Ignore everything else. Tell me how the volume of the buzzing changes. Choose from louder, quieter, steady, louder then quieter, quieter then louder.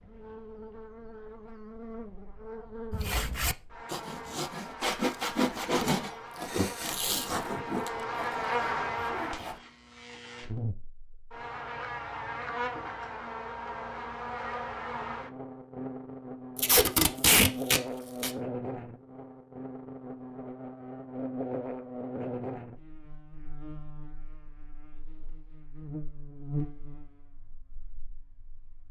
louder then quieter.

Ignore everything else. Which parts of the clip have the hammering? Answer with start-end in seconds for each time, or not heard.
not heard.